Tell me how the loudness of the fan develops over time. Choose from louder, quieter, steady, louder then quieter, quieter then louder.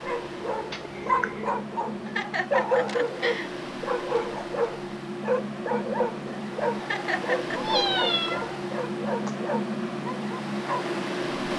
louder.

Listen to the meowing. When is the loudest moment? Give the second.
8 s.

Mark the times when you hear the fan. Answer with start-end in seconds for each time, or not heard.
0.0-11.5.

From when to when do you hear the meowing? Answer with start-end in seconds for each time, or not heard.
0.7-1.5, 7.5-9.3.